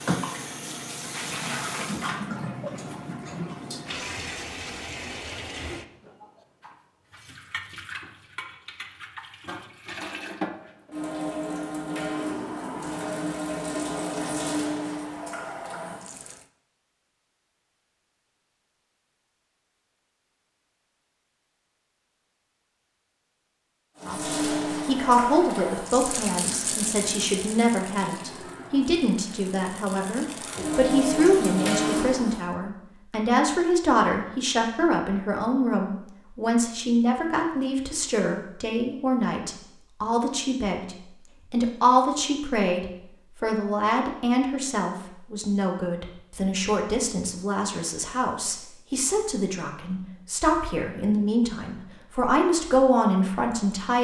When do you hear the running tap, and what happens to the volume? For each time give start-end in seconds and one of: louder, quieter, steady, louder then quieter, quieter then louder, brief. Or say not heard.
0.0-16.4 quieter then louder
24.0-32.5 quieter then louder.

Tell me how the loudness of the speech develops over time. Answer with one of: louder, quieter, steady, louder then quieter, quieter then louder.
steady.